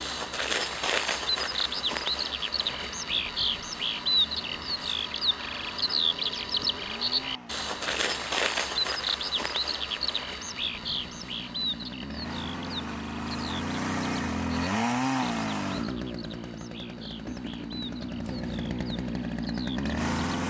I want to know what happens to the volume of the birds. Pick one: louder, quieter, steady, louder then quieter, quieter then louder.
quieter.